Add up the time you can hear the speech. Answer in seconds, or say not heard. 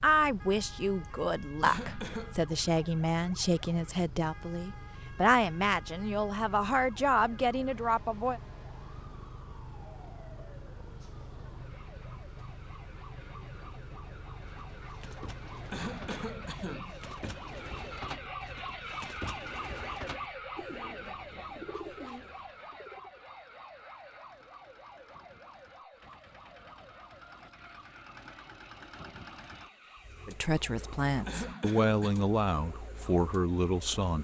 12 s.